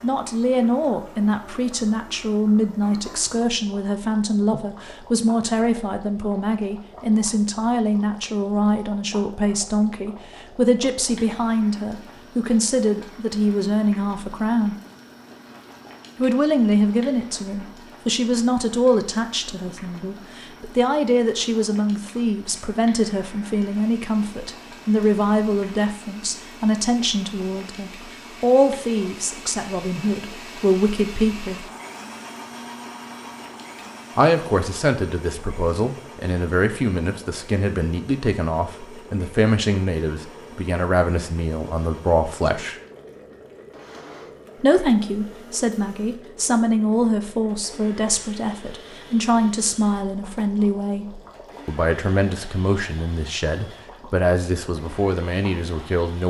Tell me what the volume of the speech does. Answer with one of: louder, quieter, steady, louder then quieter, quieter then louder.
steady.